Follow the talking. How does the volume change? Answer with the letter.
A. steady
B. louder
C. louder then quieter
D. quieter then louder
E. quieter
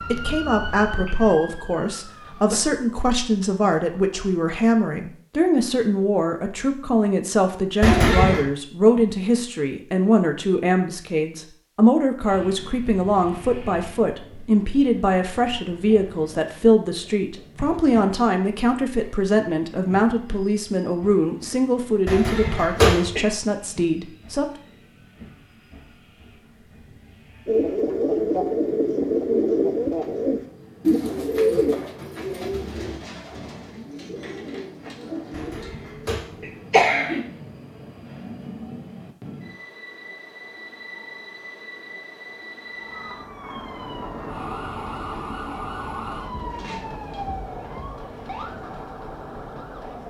A.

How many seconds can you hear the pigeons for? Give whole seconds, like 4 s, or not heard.
8 s.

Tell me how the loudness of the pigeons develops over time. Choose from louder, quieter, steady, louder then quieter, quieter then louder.
quieter.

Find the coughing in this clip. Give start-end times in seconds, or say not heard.
7.8-8.4, 22.1-23.2, 35.3-37.2.